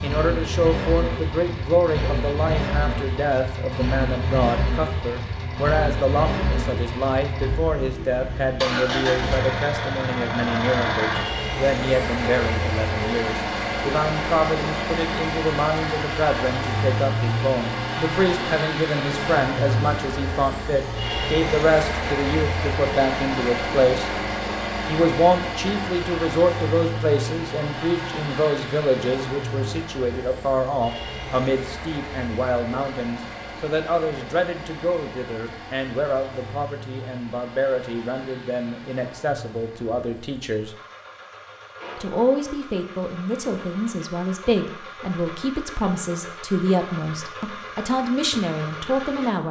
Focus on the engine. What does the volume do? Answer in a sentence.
The volume of the engine goes down.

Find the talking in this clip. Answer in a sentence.
The talking can be heard from 0.0 to 24.1 s, from 24.9 to 40.8 s and from 42.0 to 49.4 s.